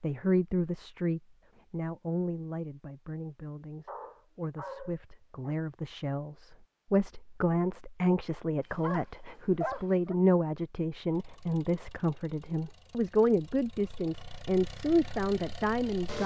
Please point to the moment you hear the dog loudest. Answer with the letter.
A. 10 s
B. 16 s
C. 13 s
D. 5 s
A.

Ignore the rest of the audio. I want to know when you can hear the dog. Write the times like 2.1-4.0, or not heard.
3.9-5.5, 8.6-10.2.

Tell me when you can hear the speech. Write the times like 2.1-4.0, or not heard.
0.0-16.2.